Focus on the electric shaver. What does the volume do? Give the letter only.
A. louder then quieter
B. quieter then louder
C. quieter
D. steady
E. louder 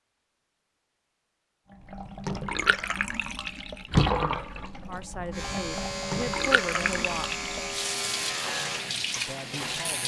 C.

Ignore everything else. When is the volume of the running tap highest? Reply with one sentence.
The loudest moment of the running tap is at 4 seconds.